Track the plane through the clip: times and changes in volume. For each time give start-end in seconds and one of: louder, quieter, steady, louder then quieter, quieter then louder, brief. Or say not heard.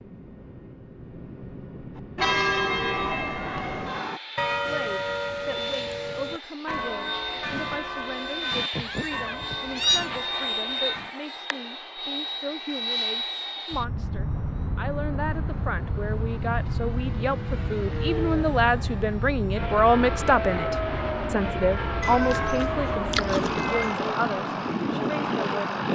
0.0-25.9 louder.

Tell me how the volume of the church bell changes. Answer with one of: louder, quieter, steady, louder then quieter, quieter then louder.
quieter.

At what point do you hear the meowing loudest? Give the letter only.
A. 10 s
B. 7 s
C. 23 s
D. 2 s
A.